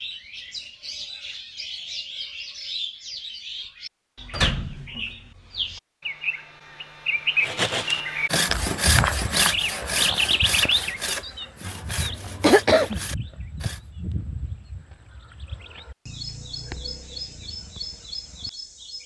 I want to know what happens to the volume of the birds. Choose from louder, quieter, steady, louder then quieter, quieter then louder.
louder then quieter.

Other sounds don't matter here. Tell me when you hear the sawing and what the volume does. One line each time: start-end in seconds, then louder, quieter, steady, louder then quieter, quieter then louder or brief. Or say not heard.
7.4-13.8 quieter.